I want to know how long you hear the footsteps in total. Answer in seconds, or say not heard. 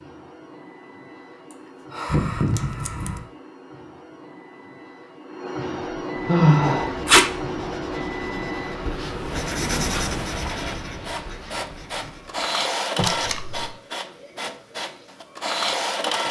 not heard.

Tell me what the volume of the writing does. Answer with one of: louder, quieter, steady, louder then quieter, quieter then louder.
louder then quieter.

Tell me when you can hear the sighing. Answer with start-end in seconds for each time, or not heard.
1.9-3.2, 5.7-6.9, 12.9-13.8.